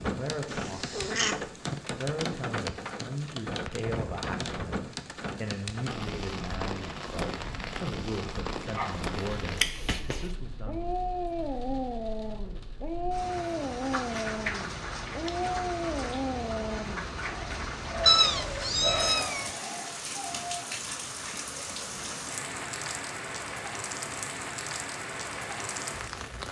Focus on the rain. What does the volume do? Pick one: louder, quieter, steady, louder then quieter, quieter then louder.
steady.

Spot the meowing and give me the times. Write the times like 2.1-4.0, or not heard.
0.5-1.8, 18.1-19.5.